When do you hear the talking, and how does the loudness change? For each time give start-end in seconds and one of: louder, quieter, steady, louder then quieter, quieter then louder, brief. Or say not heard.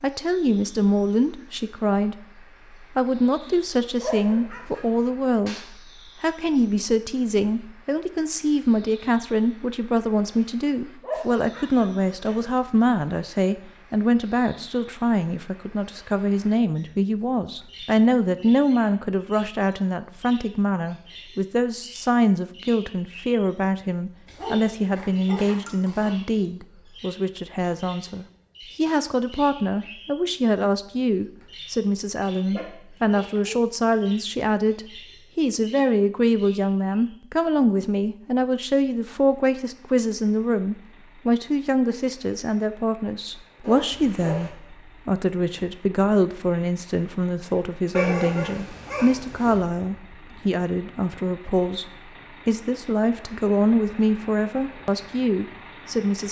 0.0-2.2 brief
3.0-56.2 steady.